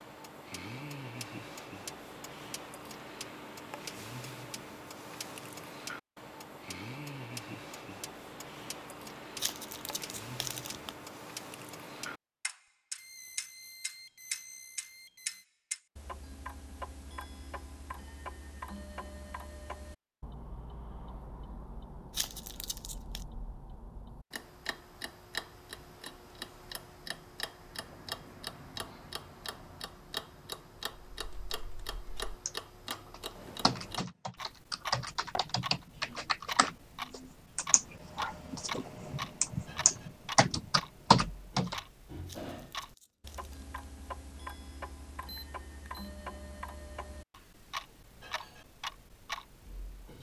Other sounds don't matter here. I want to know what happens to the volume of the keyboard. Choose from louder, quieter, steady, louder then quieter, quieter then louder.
louder.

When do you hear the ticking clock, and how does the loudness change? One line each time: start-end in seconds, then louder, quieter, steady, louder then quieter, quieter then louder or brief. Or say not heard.
0.0-50.1 steady.